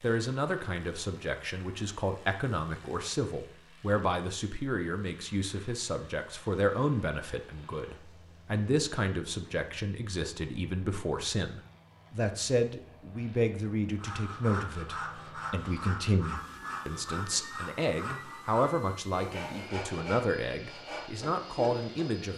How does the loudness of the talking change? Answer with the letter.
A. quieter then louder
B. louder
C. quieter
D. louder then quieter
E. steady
E.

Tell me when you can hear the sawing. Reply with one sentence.
You can hear the sawing from 13.9 to 22.1 s.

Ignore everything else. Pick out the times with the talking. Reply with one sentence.
The talking can be heard from 0.0 to 22.3 s.